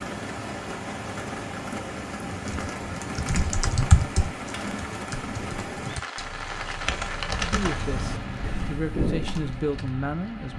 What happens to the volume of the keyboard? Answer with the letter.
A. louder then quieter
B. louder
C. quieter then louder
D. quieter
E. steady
C.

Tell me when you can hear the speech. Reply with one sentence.
You can hear the speech from 7.2 to 10.5 s.